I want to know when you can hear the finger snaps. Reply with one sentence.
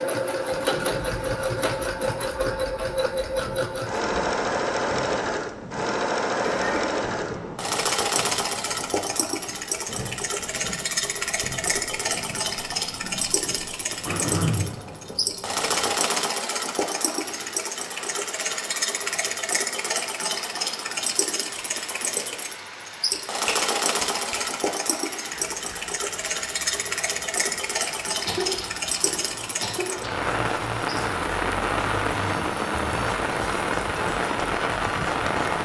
You can hear the finger snaps from 23.1 to 24.4 s.